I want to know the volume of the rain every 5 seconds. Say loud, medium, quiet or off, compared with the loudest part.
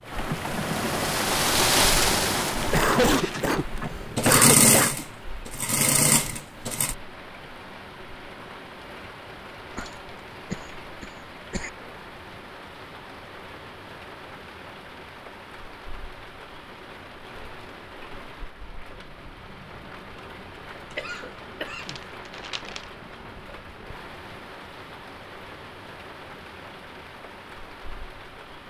loud, quiet, quiet, quiet, quiet, quiet.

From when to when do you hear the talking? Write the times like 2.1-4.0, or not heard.
not heard.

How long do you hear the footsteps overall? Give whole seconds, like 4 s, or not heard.
not heard.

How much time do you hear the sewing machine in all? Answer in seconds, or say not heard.
7 s.